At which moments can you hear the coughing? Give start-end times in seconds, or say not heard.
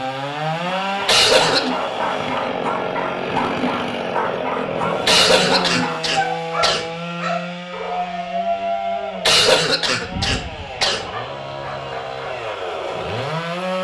1.1-1.7, 5.0-6.8, 9.2-11.1.